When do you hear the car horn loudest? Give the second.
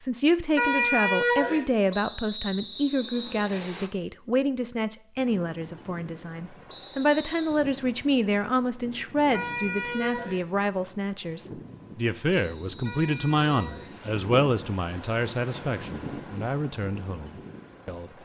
1 s.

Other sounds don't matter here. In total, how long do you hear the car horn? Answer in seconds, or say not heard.
3 s.